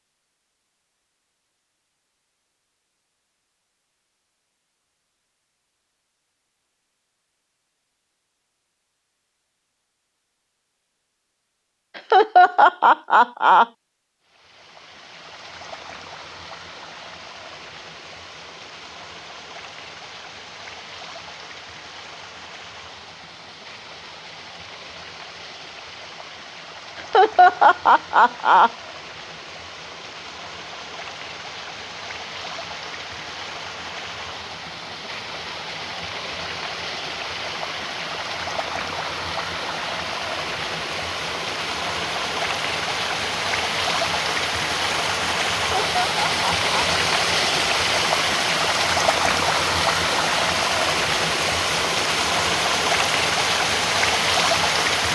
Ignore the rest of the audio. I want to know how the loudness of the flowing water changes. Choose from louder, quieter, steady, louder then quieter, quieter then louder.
louder.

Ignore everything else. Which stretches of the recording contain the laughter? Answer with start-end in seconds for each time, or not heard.
11.9-13.7, 27.1-28.7, 45.5-46.9.